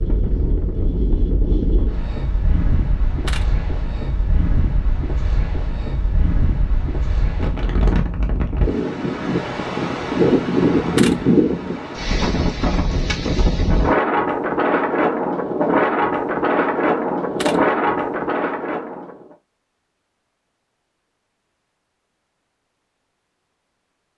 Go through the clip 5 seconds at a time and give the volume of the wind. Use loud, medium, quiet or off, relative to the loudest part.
medium, medium, loud, loud, off.